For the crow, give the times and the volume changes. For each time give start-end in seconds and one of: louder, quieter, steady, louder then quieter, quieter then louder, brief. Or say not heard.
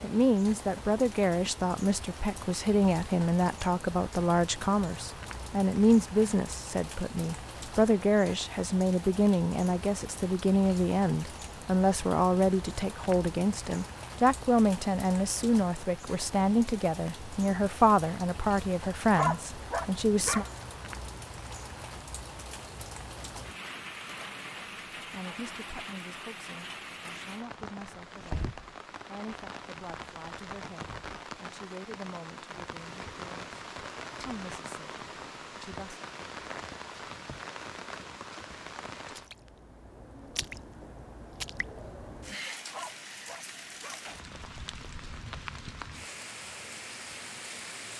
not heard.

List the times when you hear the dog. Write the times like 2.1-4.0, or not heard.
19.1-20.5, 42.7-44.0.